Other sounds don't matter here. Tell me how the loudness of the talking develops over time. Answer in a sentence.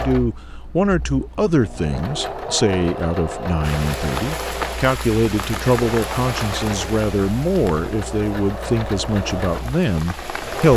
The volume of the talking stays about the same.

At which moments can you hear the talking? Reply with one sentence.
You can hear the talking from 0.0 to 10.7 s.